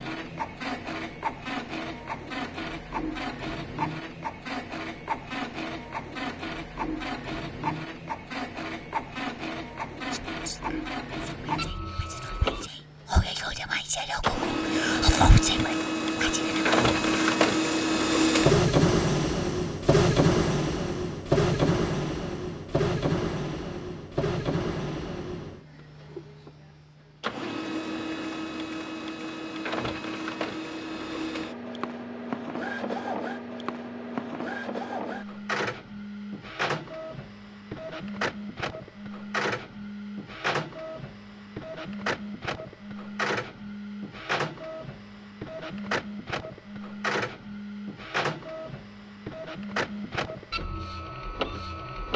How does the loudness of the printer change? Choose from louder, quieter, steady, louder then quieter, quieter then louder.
louder then quieter.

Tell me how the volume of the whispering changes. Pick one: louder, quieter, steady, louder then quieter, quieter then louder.
louder.